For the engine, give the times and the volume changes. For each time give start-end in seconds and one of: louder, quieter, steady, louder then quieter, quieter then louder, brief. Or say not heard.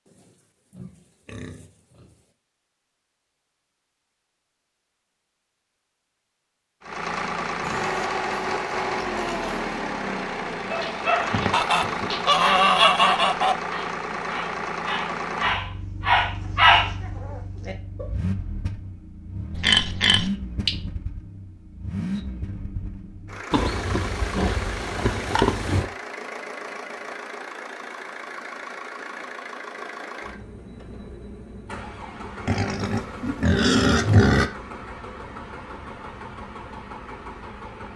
6.8-37.9 quieter.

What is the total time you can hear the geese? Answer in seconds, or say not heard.
2 s.